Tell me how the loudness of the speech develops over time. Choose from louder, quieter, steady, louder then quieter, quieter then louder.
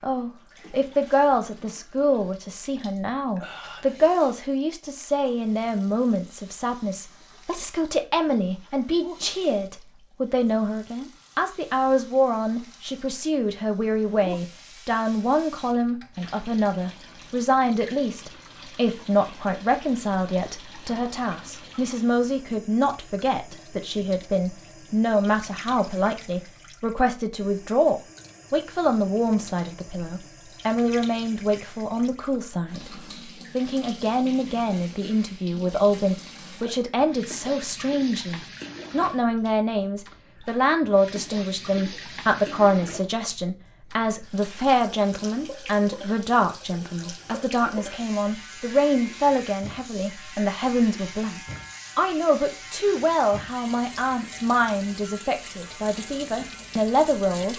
steady.